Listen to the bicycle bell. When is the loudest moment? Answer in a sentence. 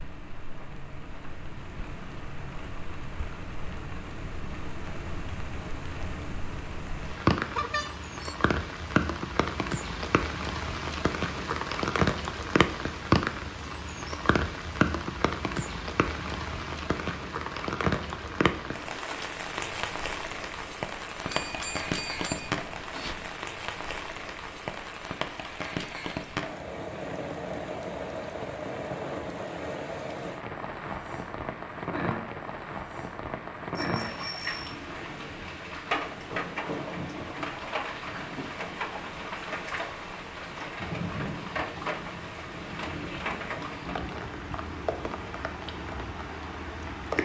The loudest moment of the bicycle bell is at 8 seconds.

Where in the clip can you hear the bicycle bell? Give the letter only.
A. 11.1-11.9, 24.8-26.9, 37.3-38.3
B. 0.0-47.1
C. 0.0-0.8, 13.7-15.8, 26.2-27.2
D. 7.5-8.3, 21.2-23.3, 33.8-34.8
D.